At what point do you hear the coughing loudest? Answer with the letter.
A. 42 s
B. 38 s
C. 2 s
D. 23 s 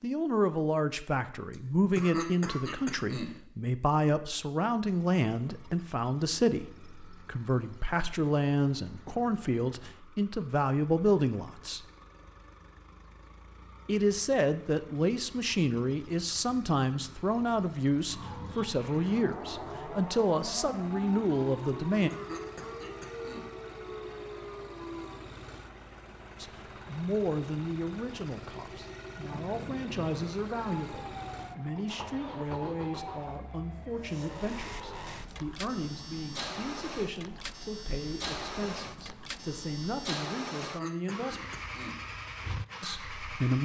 C.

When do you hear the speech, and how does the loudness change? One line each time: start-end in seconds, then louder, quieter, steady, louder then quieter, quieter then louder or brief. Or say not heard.
0.0-11.8 steady
13.8-22.1 steady
26.4-41.5 steady
42.8-43.5 brief.